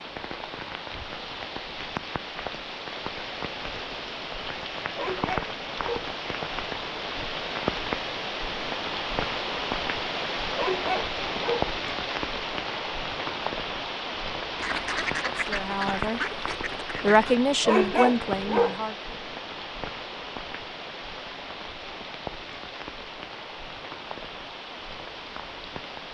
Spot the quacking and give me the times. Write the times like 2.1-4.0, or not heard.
14.6-17.4.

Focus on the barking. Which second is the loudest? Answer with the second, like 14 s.
18 s.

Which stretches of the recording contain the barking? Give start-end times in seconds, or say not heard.
5.0-6.2, 10.6-11.8, 17.6-18.8.